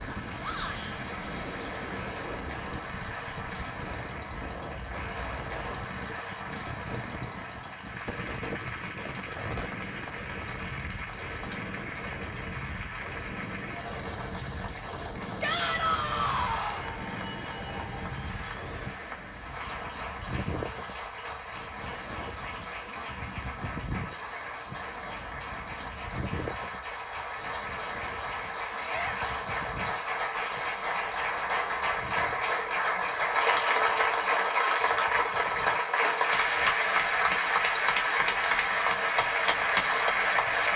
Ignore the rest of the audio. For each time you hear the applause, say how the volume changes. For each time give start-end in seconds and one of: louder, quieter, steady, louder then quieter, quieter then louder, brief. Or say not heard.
0.0-40.7 louder.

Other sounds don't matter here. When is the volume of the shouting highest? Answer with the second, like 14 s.
16 s.